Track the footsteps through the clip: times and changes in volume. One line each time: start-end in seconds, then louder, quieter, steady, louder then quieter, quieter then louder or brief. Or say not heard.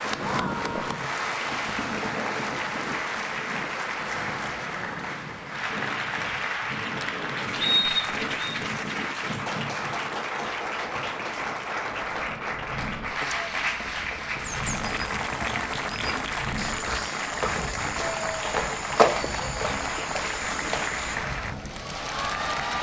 13.2-21.1 louder then quieter.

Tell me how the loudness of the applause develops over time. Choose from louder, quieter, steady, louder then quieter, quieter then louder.
steady.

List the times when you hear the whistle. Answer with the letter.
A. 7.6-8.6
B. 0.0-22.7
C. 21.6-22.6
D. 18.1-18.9
A.